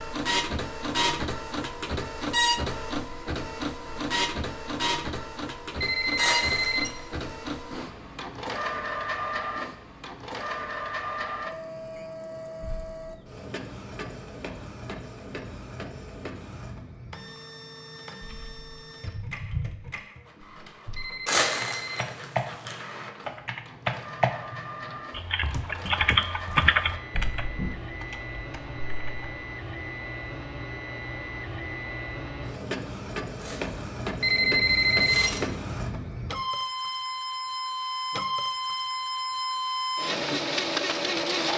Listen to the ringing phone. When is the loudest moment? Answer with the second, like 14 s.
35 s.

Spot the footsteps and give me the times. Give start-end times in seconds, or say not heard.
not heard.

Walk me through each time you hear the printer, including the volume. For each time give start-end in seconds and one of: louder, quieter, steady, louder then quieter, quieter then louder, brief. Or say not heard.
0.0-41.5 quieter then louder.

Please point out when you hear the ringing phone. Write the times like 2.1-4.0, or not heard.
5.8-7.0, 20.9-22.1, 34.2-35.4.